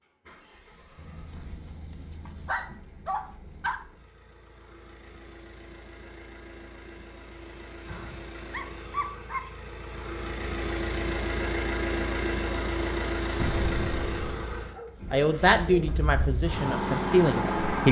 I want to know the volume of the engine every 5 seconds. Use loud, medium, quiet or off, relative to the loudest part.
quiet, quiet, loud, loud.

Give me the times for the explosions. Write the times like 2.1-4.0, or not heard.
13.3-14.7.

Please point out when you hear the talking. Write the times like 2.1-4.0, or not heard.
15.1-17.8.